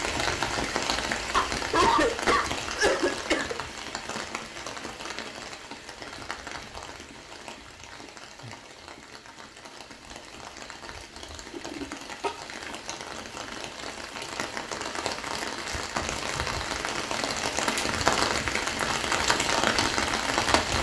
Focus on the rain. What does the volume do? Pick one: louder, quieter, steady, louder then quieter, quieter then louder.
quieter then louder.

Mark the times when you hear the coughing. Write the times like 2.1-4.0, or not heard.
1.4-3.5, 11.5-12.3.